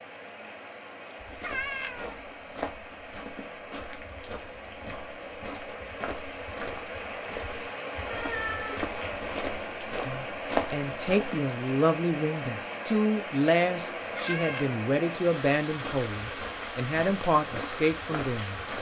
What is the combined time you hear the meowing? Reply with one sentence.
You can hear the meowing for 3 seconds altogether.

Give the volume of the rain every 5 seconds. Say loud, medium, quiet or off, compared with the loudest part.
medium, loud, loud, loud.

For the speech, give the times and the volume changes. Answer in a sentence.
The speech can be heard from 10.1 to 18.6 s, at a steady volume.